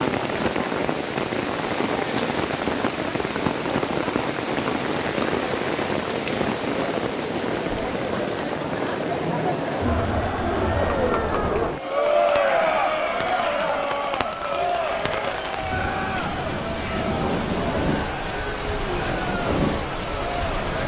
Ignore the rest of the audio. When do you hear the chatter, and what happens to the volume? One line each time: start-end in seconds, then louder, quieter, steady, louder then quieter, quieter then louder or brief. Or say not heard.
0.0-20.8 louder then quieter.